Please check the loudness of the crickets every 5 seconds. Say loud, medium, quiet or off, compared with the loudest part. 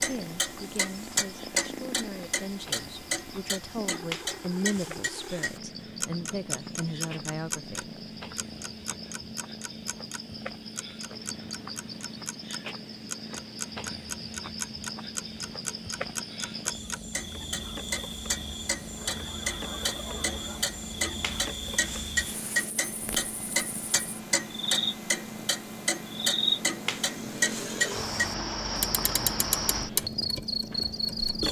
quiet, quiet, medium, medium, medium, loud, loud.